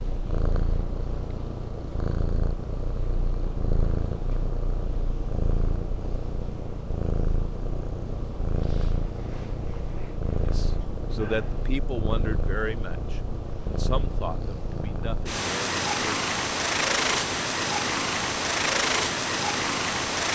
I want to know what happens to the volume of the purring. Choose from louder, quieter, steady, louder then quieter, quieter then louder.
louder.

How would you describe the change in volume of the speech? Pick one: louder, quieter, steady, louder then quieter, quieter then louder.
quieter.